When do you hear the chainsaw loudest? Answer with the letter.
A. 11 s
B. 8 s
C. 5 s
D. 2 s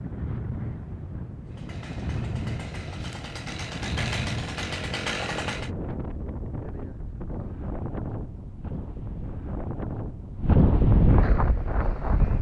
C.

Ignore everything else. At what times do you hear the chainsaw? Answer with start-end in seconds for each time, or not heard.
1.4-5.7.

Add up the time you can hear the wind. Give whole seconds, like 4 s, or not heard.
12 s.